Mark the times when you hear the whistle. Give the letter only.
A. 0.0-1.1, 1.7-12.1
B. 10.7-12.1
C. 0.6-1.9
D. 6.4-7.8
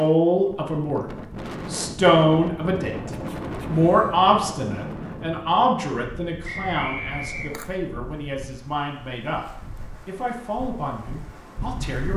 D.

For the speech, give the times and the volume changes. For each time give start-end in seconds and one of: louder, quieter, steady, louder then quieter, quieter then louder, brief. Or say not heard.
0.0-1.1 brief
1.7-12.1 quieter.